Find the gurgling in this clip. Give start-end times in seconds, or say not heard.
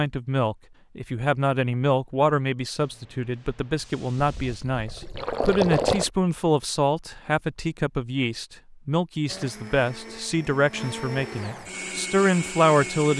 4.2-6.1.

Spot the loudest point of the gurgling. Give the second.
6 s.